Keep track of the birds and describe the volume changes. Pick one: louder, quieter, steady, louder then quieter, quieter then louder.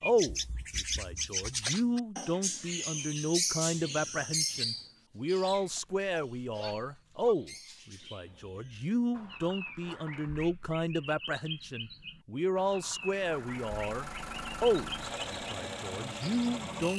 quieter then louder.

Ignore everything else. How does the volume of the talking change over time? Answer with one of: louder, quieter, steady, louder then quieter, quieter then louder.
steady.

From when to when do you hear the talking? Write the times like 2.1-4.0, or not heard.
0.0-16.9.